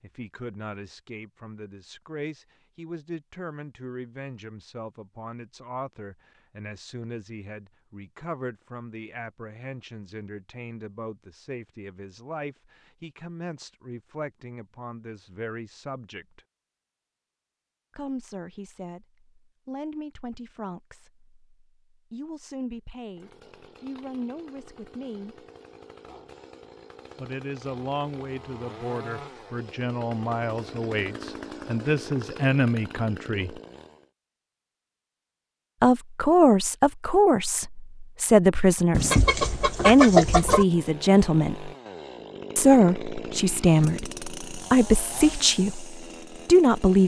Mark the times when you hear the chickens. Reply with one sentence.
You can hear the chickens from 38.9 to 40.6 s.